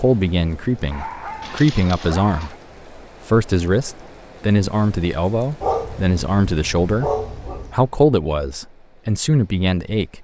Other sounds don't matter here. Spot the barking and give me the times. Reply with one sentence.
The barking can be heard from 0.9 to 2.5 s and from 5.6 to 7.8 s.